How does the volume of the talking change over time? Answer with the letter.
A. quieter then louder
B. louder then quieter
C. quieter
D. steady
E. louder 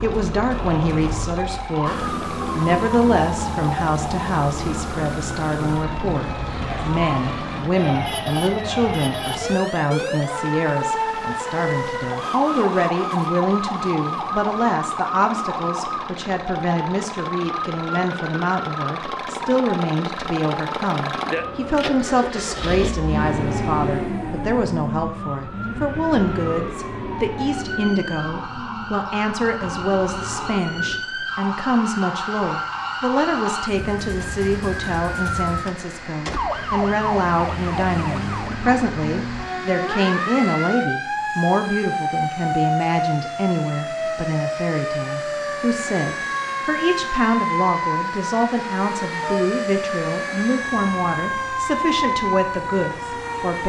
D.